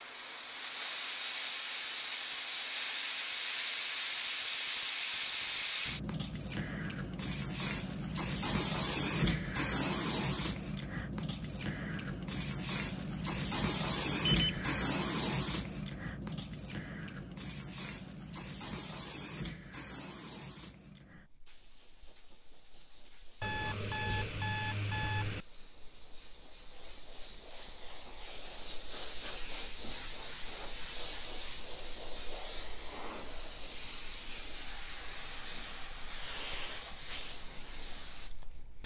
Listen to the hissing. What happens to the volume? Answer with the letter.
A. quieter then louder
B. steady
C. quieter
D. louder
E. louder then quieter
A.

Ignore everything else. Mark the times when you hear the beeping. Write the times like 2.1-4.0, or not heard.
14.2-14.7, 23.4-25.4.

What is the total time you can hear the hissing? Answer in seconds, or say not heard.
39 s.